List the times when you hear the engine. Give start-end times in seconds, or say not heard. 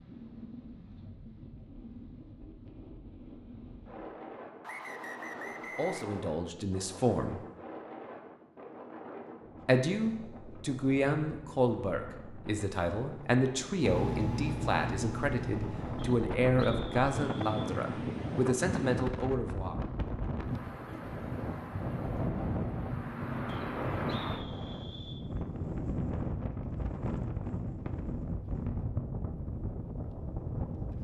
13.8-16.2.